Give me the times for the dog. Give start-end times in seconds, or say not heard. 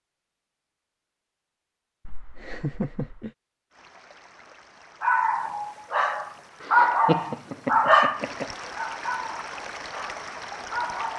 5.0-11.1.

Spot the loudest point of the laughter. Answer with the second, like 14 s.
7 s.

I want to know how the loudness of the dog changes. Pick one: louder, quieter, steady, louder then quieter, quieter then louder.
louder then quieter.